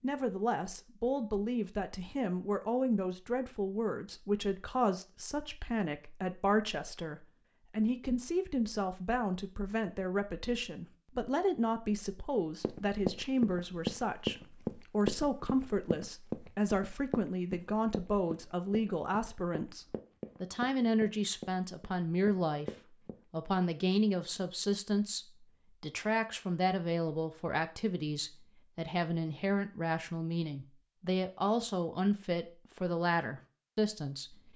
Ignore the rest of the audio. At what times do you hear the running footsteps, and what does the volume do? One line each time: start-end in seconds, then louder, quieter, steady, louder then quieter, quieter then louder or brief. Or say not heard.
12.6-23.2 quieter.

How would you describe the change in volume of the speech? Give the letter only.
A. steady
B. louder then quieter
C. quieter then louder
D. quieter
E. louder
A.